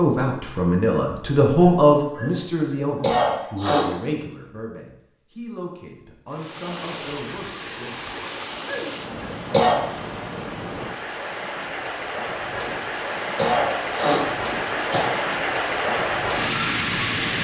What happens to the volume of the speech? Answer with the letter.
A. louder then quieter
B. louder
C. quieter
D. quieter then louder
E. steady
C.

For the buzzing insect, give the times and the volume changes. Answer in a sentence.
You can't hear the buzzing insect here.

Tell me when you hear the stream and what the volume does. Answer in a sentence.
The stream can be heard from 6.3 to 17.3 s, getting louder.